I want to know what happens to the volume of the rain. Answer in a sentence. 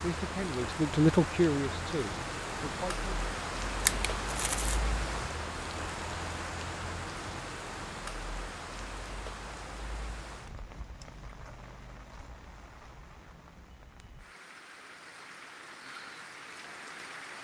The loudness of the rain goes down.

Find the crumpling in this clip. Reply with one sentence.
The crumpling can be heard from 3.8 to 4.8 s.